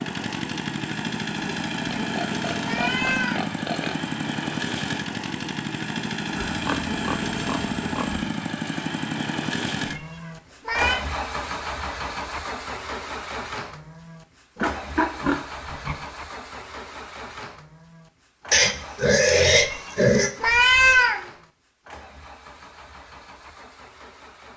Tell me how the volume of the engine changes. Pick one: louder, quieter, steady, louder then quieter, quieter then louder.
quieter.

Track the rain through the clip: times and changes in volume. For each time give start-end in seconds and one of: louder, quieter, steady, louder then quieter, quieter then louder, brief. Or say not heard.
not heard.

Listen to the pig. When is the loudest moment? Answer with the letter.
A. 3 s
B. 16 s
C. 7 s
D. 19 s
D.